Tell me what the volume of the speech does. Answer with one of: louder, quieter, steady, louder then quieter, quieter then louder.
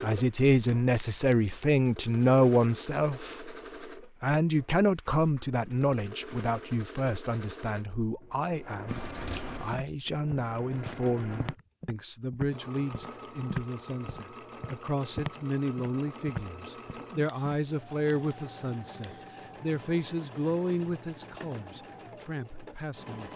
quieter.